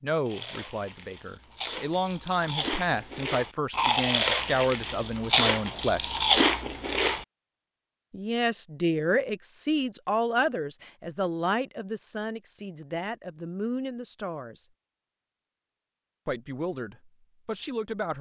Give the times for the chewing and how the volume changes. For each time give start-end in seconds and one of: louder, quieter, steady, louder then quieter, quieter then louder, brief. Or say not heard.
0.2-7.2 louder.